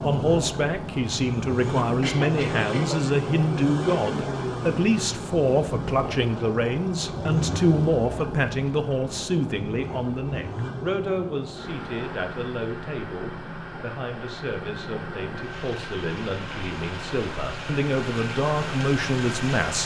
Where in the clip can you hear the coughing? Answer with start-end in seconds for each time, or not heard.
2.0-3.0.